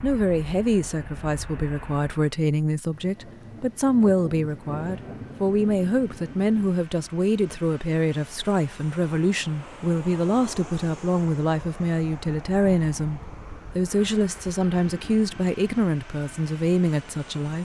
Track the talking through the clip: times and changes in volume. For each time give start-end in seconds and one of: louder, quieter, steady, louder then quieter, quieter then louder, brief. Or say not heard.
0.0-17.5 steady.